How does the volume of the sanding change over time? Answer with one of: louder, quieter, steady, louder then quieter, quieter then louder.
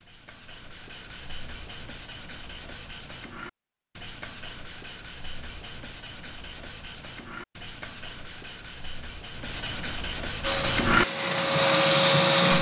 louder.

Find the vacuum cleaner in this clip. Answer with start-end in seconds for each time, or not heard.
10.4-12.5.